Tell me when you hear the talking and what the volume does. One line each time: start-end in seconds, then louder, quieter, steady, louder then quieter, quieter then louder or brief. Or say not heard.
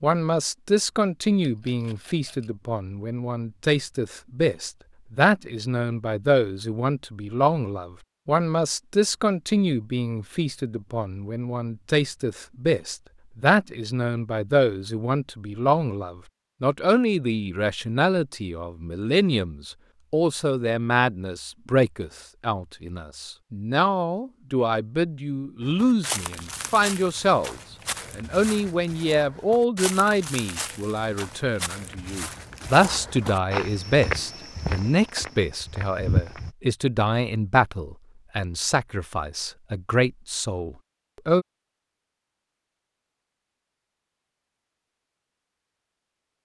0.0-41.5 steady.